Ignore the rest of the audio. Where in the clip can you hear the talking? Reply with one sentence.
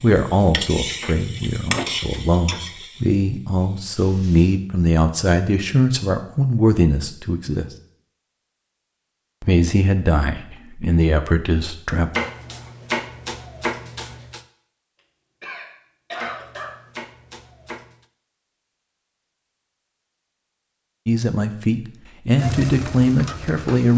You can hear the talking from 0.0 to 7.7 s, from 9.4 to 12.1 s and from 21.1 to 23.9 s.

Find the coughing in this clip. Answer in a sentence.
The coughing can be heard from 15.4 to 16.8 s.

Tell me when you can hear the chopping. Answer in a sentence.
The chopping can be heard from 1.0 to 2.8 s, from 12.1 to 14.4 s and from 16.1 to 18.1 s.